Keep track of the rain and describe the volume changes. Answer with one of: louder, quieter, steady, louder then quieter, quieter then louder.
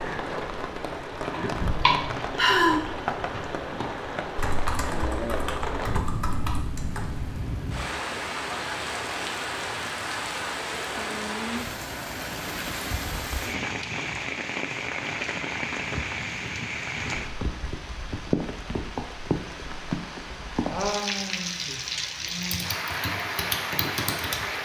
steady.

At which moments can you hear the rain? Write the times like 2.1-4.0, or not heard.
0.0-24.5.